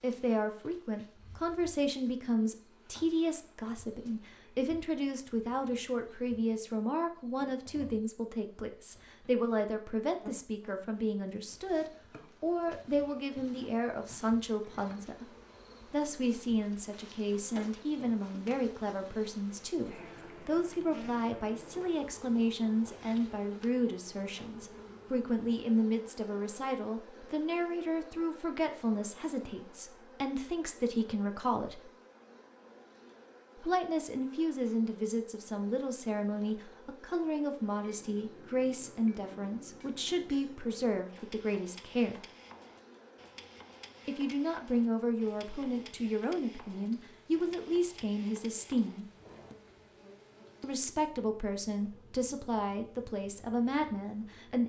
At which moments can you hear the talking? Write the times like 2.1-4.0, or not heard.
0.0-15.2, 15.9-31.8, 33.5-42.2, 44.0-49.0, 50.6-54.6.